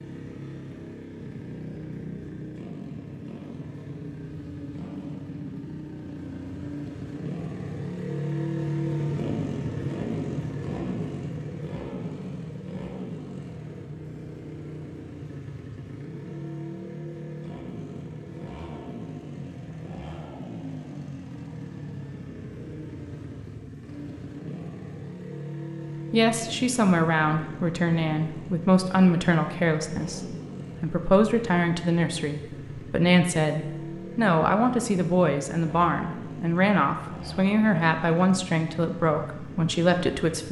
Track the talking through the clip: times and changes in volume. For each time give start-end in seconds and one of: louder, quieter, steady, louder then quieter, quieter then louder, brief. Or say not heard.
26.1-40.4 steady.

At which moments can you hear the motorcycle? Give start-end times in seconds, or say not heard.
0.0-40.4.